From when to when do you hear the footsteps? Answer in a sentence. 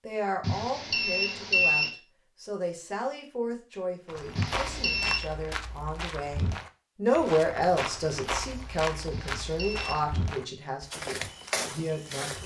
You can hear the footsteps from 4.0 to 12.4 s.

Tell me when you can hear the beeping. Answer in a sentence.
You can hear the beeping from 0.4 to 1.9 s, from 4.3 to 5.2 s and from 9.1 to 10.1 s.